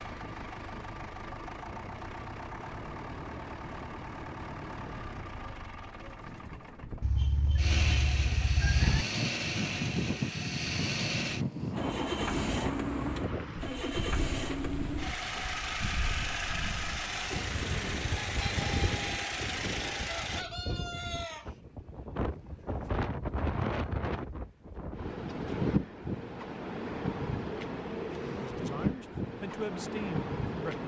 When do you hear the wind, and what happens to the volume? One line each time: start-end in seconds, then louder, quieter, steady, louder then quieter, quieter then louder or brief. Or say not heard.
8.6-30.8 quieter then louder.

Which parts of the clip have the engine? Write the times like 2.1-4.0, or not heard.
0.0-20.4.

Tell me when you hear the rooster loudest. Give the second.
9 s.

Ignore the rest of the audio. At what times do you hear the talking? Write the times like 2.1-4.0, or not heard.
28.1-30.8.